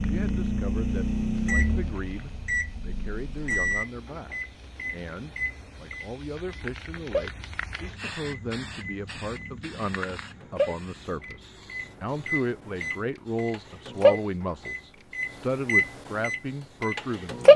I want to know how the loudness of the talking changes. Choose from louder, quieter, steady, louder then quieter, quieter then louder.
louder.